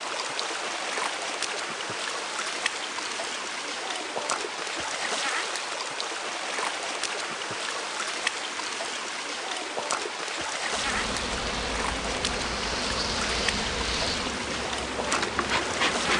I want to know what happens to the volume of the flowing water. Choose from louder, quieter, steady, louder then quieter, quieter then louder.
steady.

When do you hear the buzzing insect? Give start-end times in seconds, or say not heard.
10.7-16.1.